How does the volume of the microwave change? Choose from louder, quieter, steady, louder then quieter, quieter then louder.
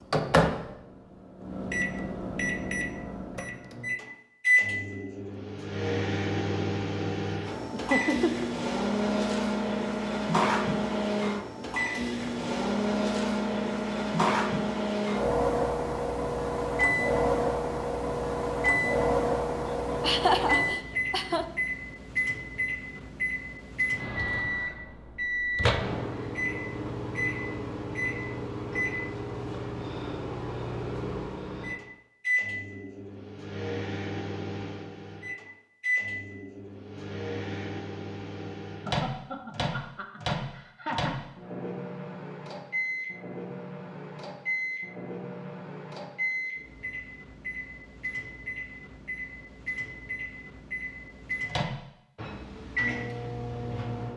quieter.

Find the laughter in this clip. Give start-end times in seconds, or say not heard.
7.7-8.5, 20.0-21.4, 38.9-41.3.